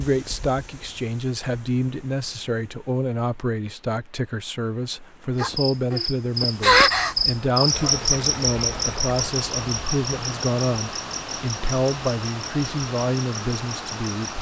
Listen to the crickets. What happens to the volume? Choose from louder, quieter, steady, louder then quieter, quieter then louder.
quieter.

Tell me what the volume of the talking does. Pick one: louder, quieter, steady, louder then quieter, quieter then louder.
steady.